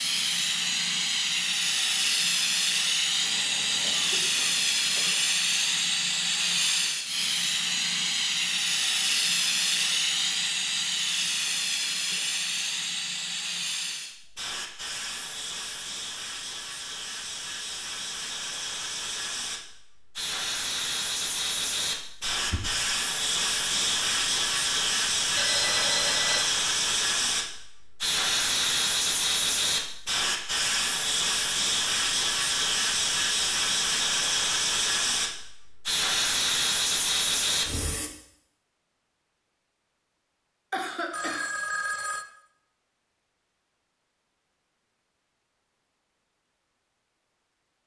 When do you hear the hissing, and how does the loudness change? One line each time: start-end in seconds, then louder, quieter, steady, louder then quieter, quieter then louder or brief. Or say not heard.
0.0-38.1 quieter then louder.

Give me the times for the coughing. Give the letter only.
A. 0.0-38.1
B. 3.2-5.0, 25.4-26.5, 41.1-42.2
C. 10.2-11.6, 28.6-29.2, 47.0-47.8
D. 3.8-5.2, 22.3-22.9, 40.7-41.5
D.